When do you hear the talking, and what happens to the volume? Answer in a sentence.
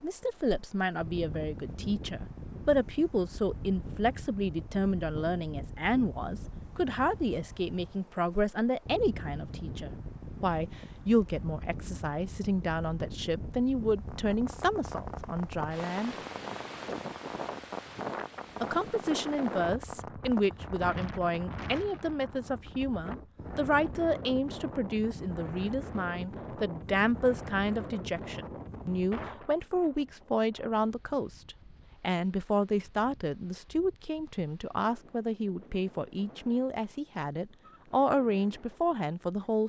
You can hear the talking from 0.0 to 16.1 s, at a steady volume; and from 18.6 to 39.6 s, at a steady volume.